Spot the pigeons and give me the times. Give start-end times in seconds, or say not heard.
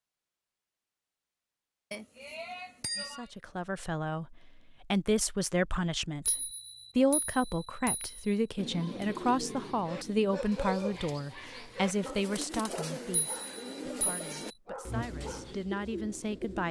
8.6-16.6.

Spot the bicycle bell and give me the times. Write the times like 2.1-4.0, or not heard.
1.9-3.2, 6.2-8.3, 13.1-14.6.